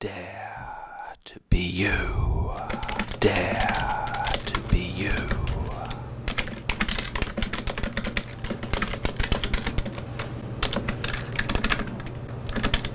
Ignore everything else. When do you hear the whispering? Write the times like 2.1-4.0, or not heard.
0.0-6.0.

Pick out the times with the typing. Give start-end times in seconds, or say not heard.
2.5-12.9.